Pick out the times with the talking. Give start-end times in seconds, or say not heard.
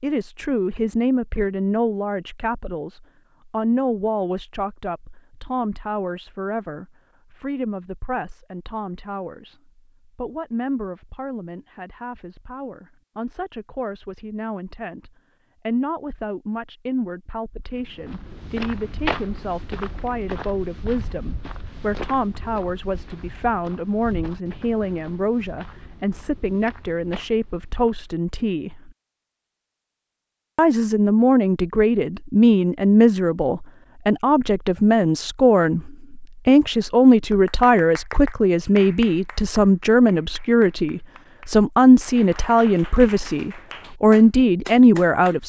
0.0-28.9, 30.6-45.4.